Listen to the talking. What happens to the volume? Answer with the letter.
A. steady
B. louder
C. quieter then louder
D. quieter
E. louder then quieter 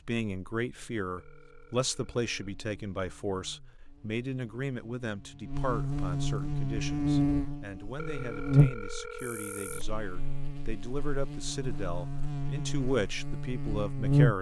C.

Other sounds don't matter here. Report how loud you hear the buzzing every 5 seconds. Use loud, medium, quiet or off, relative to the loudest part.
quiet, loud, loud.